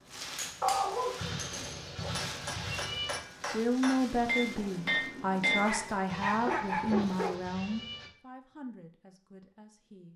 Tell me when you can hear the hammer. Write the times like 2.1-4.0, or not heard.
0.3-5.7.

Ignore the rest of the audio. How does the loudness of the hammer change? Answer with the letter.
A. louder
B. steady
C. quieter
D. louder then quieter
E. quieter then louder
A.